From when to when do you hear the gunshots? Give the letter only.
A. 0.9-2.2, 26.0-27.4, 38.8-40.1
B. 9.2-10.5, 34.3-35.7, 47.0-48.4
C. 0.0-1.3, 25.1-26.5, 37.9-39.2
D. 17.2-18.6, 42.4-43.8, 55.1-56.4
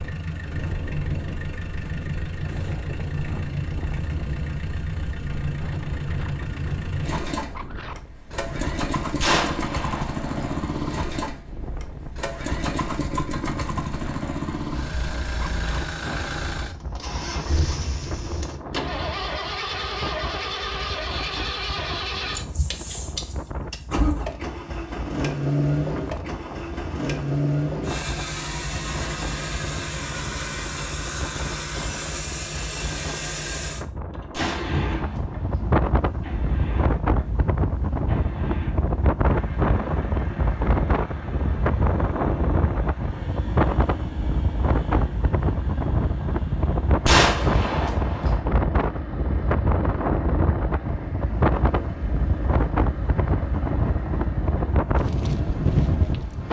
B.